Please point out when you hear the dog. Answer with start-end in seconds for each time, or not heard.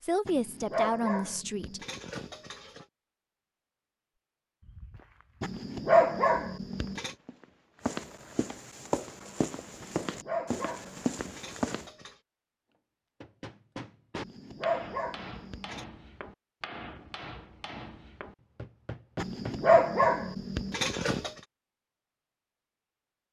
0.2-2.9, 5.4-7.1, 9.8-12.2, 14.2-15.8, 19.1-21.3.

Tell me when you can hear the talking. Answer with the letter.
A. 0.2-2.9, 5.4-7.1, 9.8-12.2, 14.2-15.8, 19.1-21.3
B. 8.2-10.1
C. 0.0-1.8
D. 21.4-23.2
C.